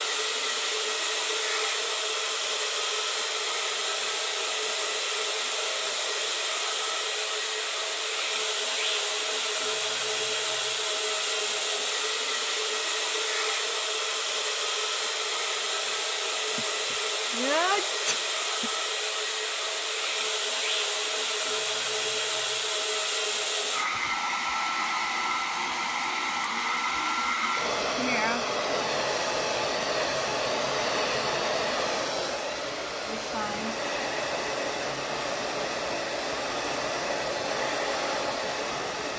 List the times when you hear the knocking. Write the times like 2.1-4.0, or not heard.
not heard.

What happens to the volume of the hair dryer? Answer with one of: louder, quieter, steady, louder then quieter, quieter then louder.
steady.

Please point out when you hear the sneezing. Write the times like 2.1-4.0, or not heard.
16.6-18.7.